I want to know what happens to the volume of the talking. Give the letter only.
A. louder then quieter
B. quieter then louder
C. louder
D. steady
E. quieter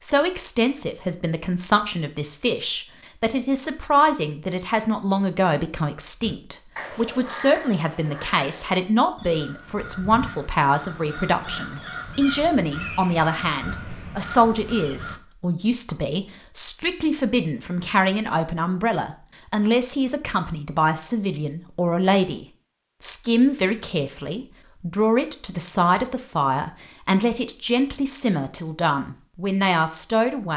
D.